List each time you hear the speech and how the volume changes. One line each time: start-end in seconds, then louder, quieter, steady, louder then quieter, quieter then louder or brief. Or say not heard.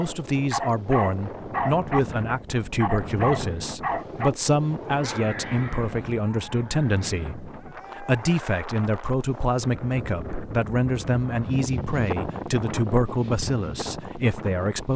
0.0-14.9 steady.